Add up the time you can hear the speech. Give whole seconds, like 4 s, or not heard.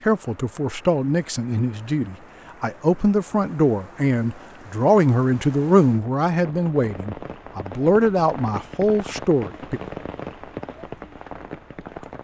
10 s.